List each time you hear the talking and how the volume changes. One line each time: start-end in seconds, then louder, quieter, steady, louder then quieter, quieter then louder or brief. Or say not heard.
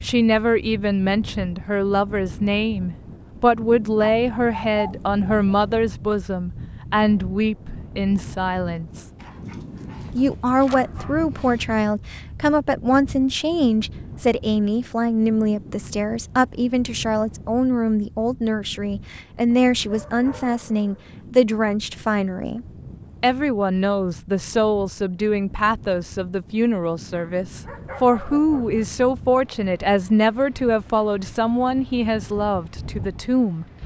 0.0-9.1 steady
10.2-33.6 steady.